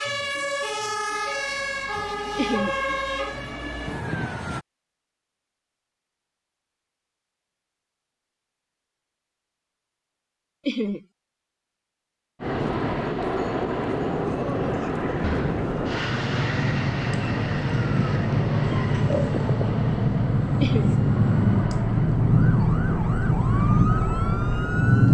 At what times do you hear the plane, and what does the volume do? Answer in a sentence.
The plane can be heard from 12.4 to 25.0 s, getting quieter.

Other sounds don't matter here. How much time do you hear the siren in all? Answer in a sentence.
You can hear the siren for 14 seconds altogether.